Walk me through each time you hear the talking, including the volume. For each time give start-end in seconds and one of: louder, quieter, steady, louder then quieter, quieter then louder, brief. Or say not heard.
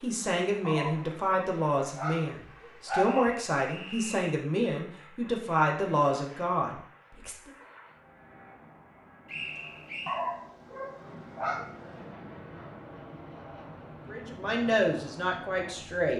0.0-7.5 steady
14.1-16.1 brief.